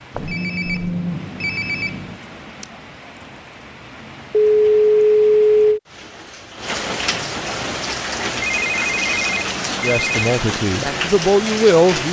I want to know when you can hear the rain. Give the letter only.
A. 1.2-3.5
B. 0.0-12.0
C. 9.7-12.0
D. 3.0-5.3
B.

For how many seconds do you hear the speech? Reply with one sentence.
You can hear the speech for 2 seconds altogether.